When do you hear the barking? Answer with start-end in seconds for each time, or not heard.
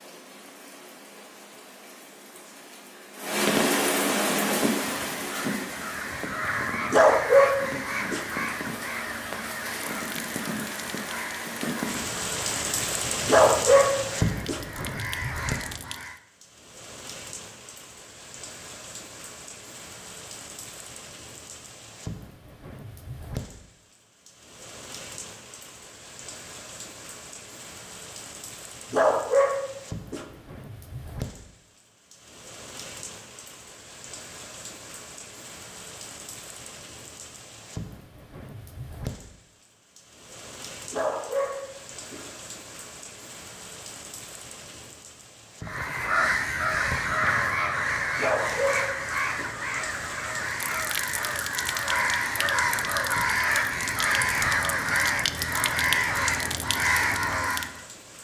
6.9-8.2, 13.2-14.6, 28.9-30.2, 40.9-42.2, 48.1-49.5.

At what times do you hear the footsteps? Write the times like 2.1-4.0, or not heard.
not heard.